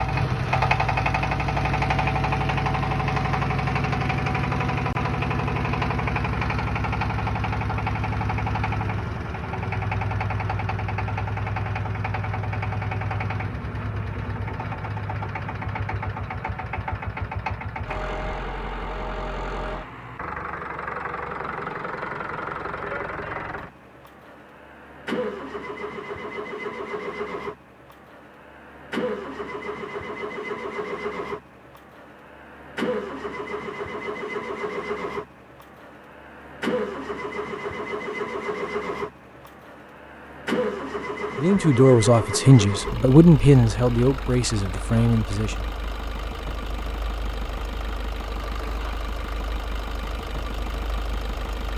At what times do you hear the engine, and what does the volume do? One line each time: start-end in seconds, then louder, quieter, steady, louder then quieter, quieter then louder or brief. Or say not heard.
0.0-51.7 quieter.